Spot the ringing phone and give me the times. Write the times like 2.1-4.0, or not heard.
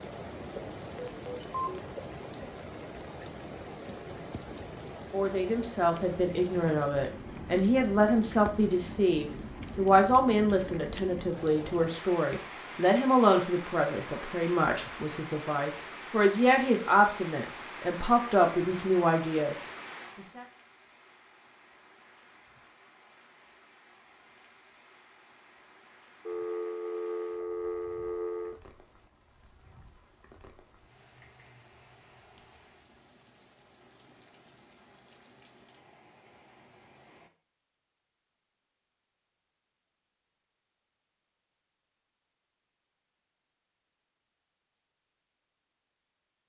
0.9-1.8, 26.2-28.6.